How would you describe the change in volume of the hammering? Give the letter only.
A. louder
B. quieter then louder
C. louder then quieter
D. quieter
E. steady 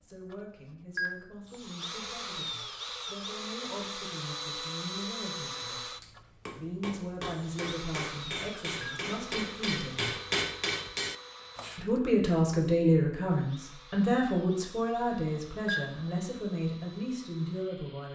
A.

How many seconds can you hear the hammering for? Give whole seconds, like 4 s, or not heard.
6 s.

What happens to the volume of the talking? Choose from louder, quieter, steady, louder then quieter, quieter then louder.
louder then quieter.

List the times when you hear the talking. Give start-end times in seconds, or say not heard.
0.0-5.9, 6.5-10.2, 11.8-18.0.